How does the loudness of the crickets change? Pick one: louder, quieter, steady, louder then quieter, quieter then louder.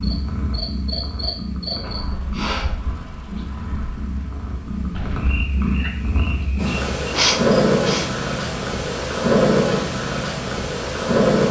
quieter then louder.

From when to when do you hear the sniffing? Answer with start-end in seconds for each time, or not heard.
1.7-2.8, 7.1-8.1.